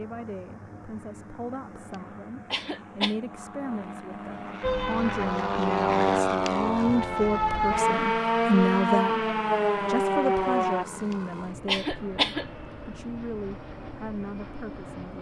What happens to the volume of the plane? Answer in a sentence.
The loudness of the plane goes up, then down.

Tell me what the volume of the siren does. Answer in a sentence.
The loudness of the siren goes up.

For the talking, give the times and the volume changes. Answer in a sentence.
The talking can be heard from 0.0 to 15.1 s, getting louder then quieter.